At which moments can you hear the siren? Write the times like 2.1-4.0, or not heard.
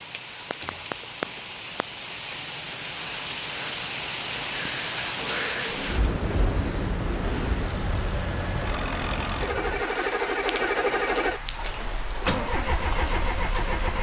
not heard.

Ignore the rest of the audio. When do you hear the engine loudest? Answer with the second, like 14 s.
11 s.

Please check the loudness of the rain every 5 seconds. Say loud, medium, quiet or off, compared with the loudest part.
loud, loud, medium.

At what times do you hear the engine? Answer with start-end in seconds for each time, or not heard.
5.2-13.9.